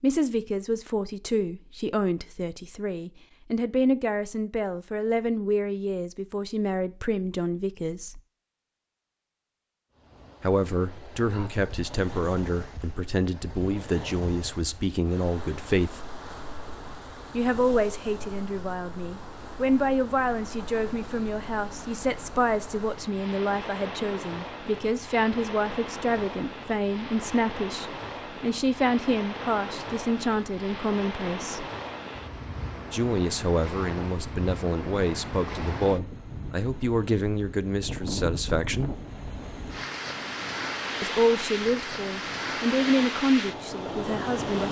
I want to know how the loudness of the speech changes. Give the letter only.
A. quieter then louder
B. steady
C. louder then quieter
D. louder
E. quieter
B.